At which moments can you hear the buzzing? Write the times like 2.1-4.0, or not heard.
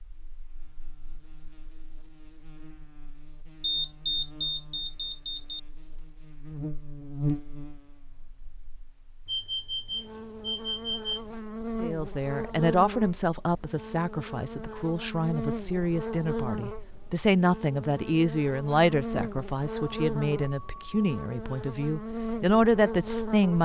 0.0-23.5.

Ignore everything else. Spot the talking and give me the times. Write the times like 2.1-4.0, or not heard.
11.8-23.5.